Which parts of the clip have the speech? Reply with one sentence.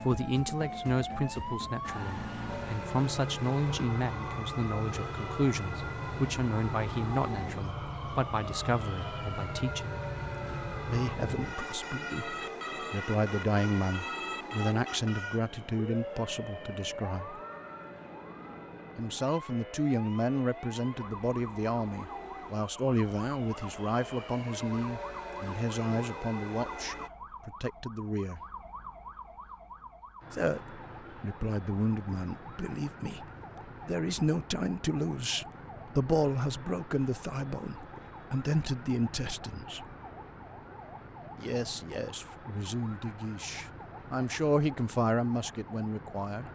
The speech can be heard from 0.0 to 10.0 s, from 10.8 to 17.4 s, from 18.9 to 28.4 s, from 30.3 to 33.2 s, from 33.9 to 39.9 s and from 41.4 to 46.4 s.